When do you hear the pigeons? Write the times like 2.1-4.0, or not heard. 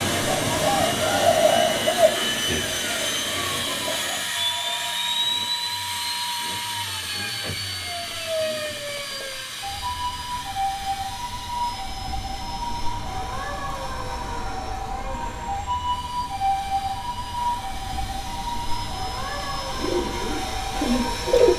0.0-4.3, 19.7-21.5.